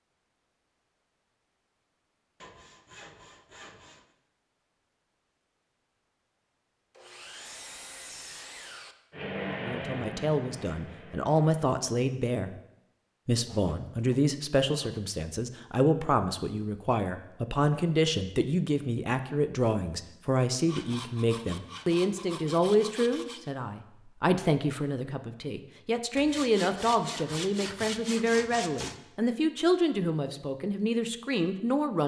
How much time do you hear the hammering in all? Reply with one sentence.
You can't hear the hammering here.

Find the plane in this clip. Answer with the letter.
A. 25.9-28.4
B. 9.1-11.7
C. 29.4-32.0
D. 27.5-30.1
B.